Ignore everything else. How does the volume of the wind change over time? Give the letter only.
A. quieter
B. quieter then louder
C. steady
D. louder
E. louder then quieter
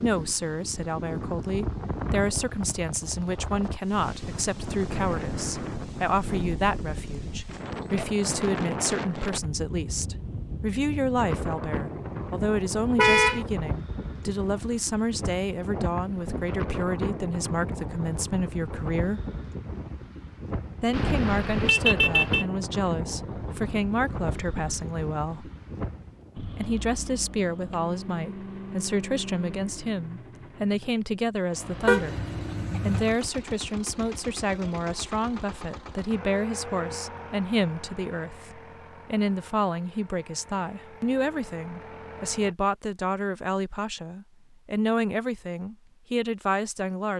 C.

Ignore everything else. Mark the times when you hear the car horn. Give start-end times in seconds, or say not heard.
12.9-13.4, 20.9-22.4, 31.9-33.1.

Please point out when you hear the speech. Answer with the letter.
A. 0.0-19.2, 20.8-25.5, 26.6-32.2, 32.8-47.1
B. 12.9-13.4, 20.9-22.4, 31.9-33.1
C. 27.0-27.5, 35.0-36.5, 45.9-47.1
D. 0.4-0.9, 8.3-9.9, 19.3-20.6
A.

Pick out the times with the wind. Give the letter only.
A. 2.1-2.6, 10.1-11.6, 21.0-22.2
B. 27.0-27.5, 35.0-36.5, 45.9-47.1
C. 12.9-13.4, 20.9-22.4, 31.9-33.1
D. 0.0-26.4
D.